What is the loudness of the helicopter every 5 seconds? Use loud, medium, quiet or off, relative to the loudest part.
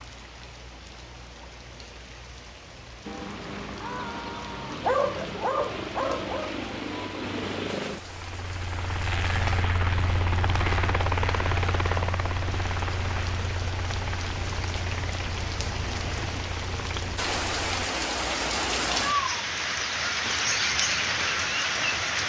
medium, loud, loud, medium, off.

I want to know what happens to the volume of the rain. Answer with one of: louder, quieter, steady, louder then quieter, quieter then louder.
louder.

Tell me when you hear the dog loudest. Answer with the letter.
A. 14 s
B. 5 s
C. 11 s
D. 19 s
B.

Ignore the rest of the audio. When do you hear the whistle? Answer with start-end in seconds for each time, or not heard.
not heard.